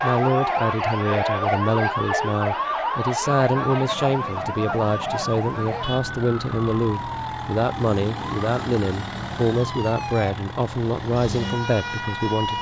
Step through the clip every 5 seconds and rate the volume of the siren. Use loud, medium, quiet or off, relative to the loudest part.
loud, medium, medium.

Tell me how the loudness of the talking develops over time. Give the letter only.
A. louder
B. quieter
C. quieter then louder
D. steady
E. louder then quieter
D.